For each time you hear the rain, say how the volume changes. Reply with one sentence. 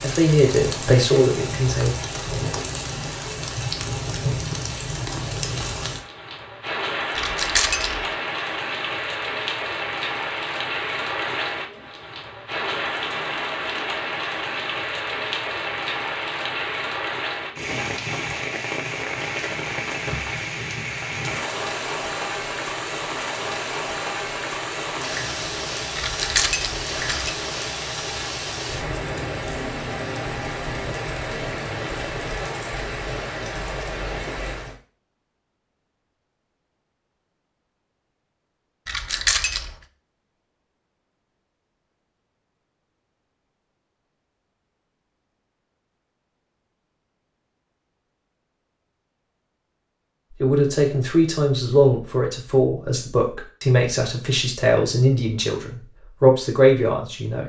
You can hear the rain from 0.0 to 34.8 s, at a steady volume.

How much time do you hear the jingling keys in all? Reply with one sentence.
You can hear the jingling keys for 3 seconds altogether.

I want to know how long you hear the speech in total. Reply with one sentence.
The speech can be heard for 9 seconds in total.